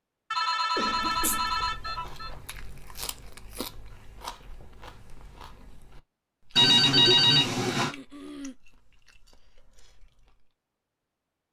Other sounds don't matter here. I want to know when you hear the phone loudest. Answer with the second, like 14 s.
7 s.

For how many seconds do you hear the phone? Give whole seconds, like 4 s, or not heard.
3 s.